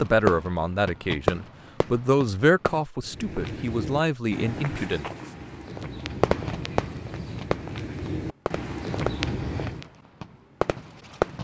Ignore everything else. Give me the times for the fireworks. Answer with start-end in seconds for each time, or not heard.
0.0-2.9, 6.0-11.3.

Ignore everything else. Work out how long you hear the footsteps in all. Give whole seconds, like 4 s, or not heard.
7 s.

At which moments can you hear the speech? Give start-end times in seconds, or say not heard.
0.0-5.1.